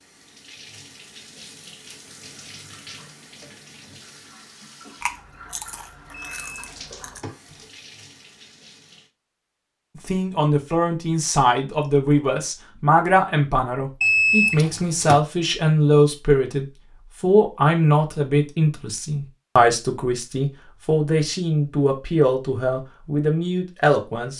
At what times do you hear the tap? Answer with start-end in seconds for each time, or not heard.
0.0-9.1.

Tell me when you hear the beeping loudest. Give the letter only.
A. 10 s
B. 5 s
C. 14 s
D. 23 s
C.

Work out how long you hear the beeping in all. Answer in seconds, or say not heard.
3 s.